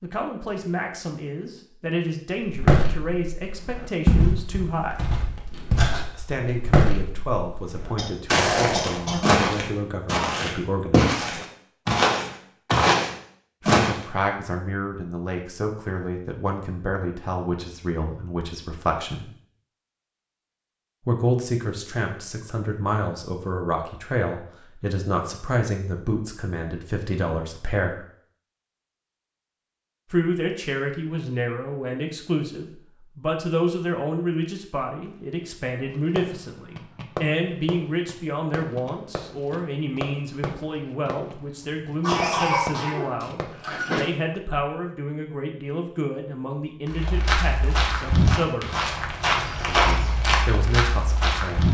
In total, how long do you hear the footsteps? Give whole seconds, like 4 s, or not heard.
16 s.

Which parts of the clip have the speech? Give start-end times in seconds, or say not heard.
0.0-5.2, 6.1-11.2, 13.6-19.2, 21.1-28.1, 30.1-49.0, 49.6-51.7.